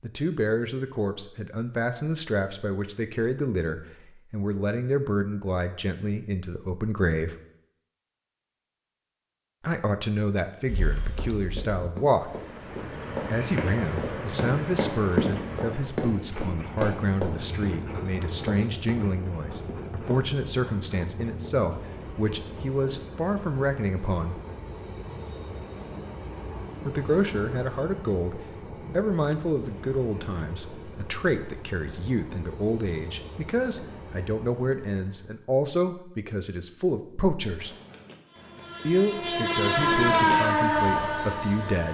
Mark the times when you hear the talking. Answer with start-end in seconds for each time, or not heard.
0.0-7.3, 9.6-12.3, 13.3-24.4, 26.9-37.7, 38.9-41.8.